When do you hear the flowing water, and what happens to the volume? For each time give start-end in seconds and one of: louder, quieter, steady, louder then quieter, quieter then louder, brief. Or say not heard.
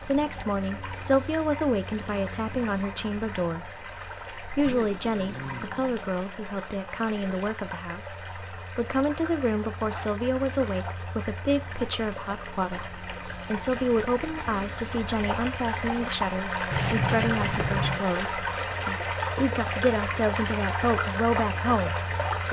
0.0-22.4 louder.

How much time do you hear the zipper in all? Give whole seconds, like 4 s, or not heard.
5 s.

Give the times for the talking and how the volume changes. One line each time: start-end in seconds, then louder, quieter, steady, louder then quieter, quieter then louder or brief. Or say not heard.
0.0-22.4 steady.